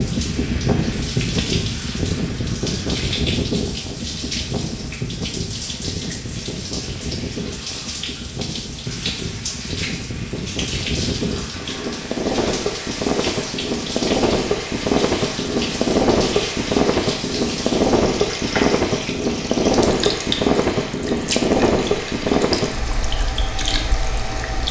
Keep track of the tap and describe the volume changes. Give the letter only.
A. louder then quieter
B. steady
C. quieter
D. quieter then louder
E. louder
B.